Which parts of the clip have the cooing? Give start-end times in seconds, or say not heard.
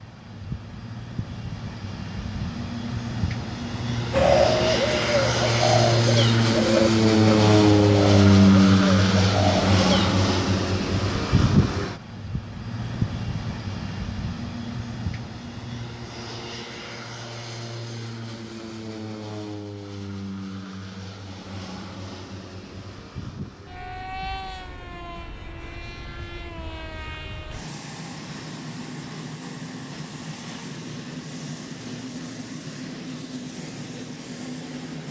4.1-10.1.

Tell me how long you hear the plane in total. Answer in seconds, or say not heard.
35 s.